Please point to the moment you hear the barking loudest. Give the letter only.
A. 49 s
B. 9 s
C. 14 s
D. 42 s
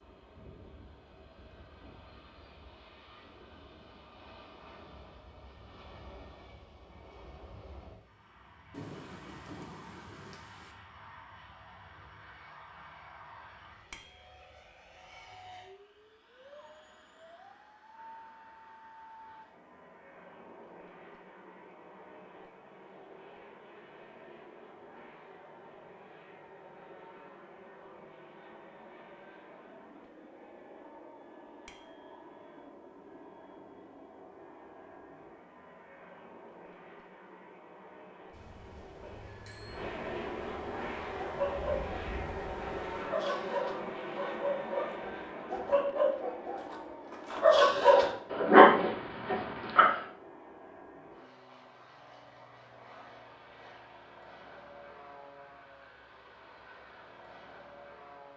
A.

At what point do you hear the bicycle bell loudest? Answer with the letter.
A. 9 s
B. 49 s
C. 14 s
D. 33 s
C.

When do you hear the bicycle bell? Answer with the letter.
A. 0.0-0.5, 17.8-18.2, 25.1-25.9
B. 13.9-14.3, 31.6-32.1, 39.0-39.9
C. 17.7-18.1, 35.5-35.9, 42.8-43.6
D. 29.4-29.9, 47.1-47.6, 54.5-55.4
B.